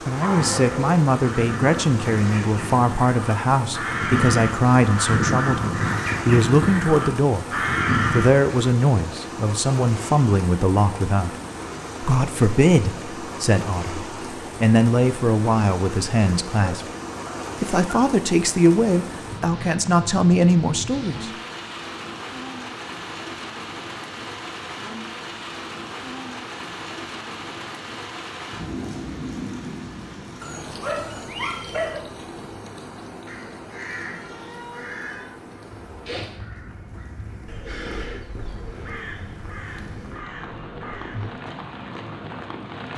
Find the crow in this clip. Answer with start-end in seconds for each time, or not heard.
0.1-8.4, 33.2-41.3.